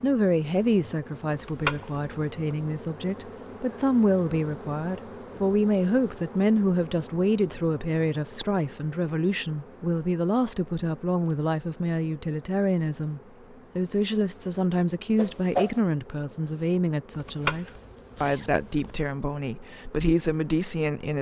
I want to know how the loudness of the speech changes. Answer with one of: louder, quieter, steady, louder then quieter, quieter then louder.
steady.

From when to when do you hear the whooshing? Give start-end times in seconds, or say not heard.
15.2-15.8.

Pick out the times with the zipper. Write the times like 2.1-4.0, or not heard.
1.3-2.1, 17.1-19.0.